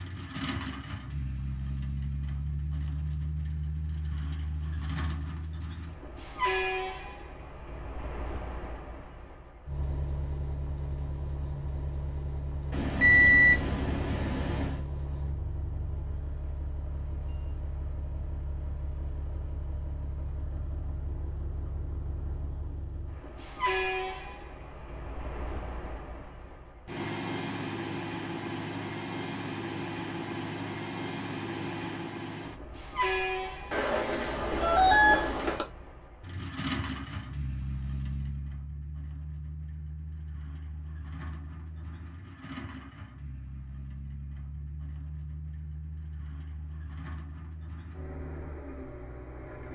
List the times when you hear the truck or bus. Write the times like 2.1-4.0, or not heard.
0.0-49.6.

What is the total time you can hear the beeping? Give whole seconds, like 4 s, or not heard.
4 s.